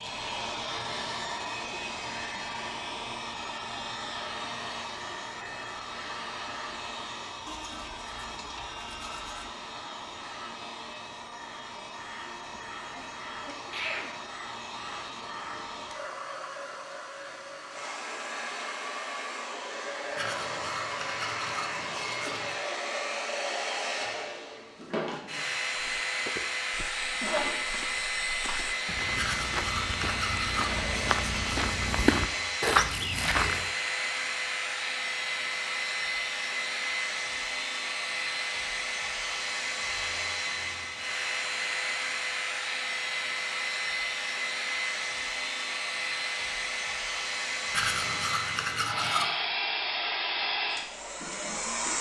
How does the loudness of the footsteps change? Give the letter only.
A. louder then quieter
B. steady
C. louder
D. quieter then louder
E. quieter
C.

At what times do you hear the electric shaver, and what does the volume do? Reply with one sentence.
You can't hear the electric shaver here.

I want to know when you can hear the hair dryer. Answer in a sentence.
You can hear the hair dryer from 0.0 to 51.9 s.